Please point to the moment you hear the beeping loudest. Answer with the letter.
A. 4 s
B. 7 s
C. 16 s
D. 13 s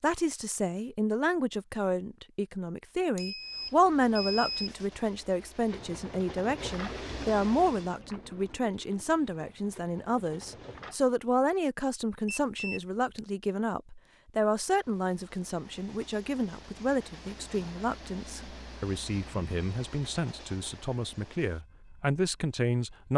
A.